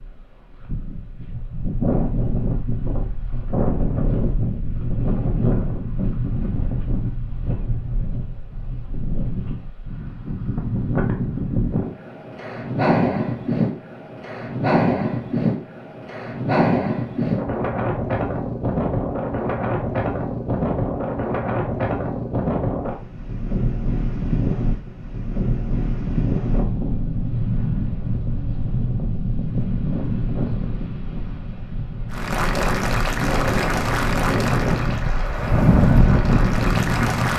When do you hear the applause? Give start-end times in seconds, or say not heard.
32.1-37.3.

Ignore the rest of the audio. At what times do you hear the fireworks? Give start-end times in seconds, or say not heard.
not heard.